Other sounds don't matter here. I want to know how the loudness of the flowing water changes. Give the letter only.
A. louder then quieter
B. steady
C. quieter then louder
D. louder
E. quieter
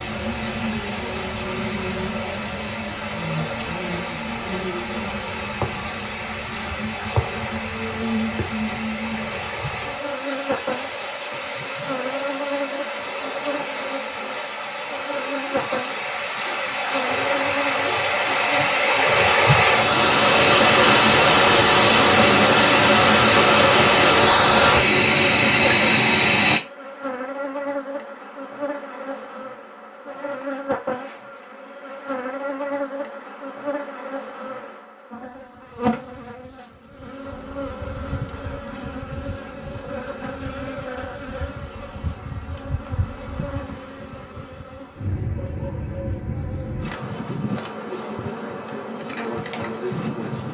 D.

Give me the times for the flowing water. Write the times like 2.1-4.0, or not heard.
0.0-26.6.